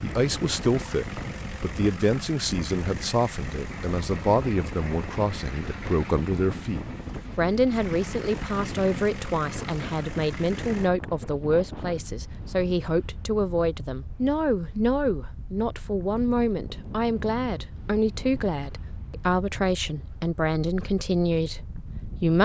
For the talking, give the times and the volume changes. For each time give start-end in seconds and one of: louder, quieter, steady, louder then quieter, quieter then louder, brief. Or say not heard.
0.0-22.3 steady.